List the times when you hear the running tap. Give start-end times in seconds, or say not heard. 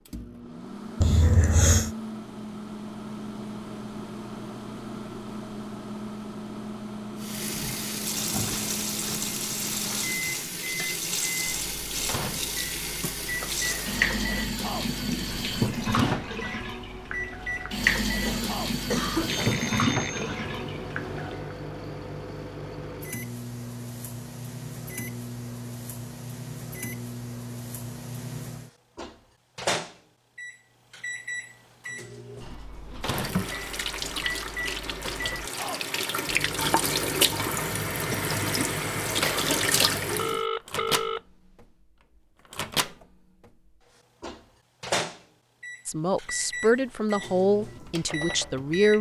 7.2-21.6, 33.0-40.4.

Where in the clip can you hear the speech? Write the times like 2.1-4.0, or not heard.
45.9-48.9.